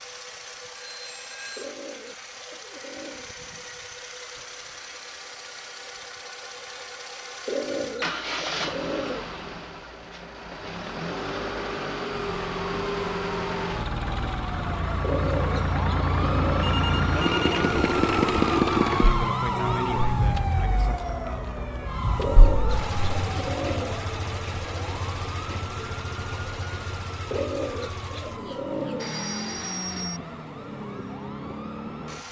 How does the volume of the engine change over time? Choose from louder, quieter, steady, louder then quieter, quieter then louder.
louder then quieter.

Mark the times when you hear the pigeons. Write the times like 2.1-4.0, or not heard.
1.6-3.3, 7.5-9.3, 15.0-16.8, 22.1-24.1, 27.3-29.1.